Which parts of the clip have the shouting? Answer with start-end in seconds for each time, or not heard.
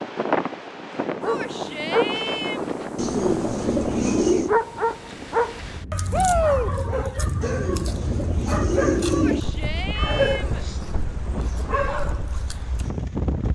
1.2-2.7, 6.1-6.7, 9.1-10.7.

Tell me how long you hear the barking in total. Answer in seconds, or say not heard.
12 s.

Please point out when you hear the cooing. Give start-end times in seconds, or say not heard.
3.0-4.5, 7.4-9.4.